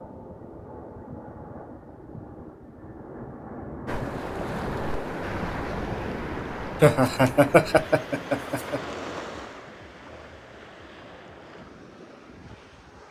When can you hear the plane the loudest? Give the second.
4 s.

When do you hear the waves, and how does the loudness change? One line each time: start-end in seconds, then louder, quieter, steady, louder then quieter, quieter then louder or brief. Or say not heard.
3.9-13.0 quieter.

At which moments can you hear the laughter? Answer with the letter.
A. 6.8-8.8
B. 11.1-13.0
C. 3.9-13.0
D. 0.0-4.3
A.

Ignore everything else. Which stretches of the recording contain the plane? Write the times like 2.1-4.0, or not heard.
0.0-4.3.